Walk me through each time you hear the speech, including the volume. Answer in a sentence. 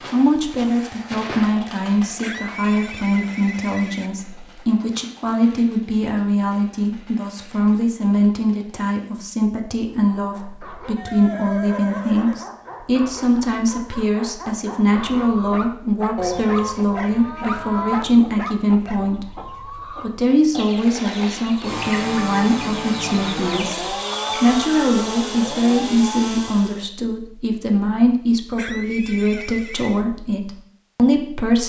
You can hear the speech from 0.1 to 31.6 s, at a steady volume.